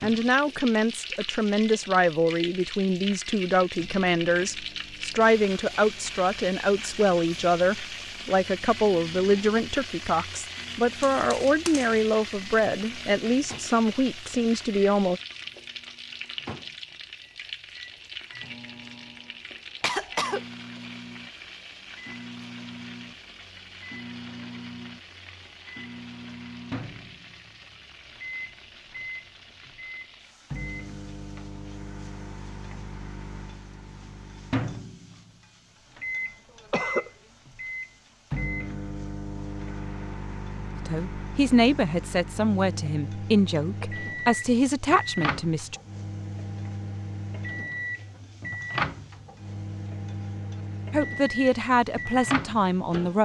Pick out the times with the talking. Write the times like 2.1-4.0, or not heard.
0.0-15.2, 40.8-45.8, 50.9-53.2.